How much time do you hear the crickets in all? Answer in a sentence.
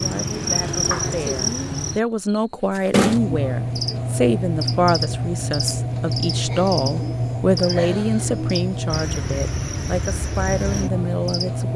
You can hear the crickets for 12 seconds altogether.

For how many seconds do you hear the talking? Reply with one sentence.
The talking can be heard for 12 seconds in total.